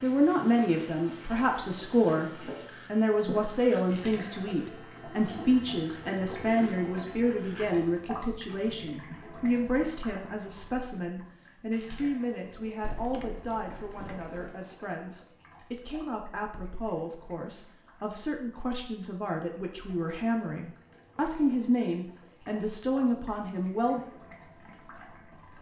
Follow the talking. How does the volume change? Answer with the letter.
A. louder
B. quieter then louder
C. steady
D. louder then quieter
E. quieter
B.